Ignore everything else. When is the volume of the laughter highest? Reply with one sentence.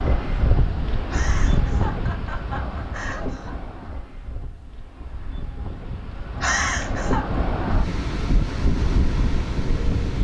The volume of the laughter peaks at 7 seconds.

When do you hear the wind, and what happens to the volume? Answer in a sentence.
You can hear the wind from 0.0 to 10.1 s, getting quieter then louder.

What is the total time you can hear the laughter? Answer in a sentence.
You can hear the laughter for 3 seconds altogether.